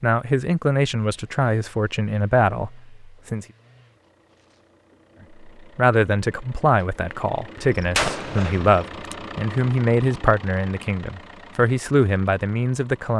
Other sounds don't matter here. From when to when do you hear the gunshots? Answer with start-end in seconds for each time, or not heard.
7.6-9.2.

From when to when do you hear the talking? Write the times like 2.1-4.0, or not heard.
0.0-3.5, 5.4-13.1.